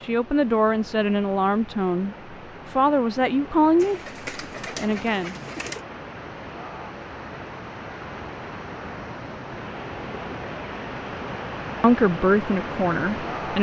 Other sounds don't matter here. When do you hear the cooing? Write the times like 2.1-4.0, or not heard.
3.8-5.8.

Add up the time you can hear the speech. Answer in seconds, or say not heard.
6 s.